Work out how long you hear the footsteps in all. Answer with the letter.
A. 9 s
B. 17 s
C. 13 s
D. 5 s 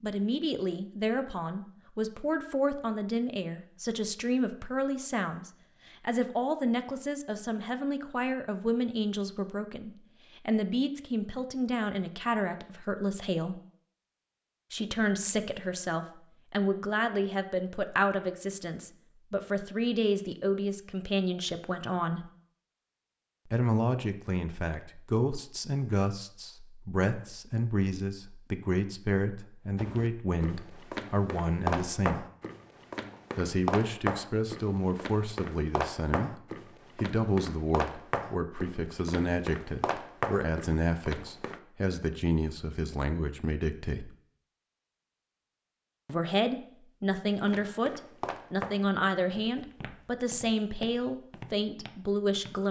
B.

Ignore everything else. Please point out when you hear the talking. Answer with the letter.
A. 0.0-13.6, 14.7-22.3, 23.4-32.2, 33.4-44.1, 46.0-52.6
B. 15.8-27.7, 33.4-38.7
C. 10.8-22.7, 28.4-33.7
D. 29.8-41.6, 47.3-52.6
A.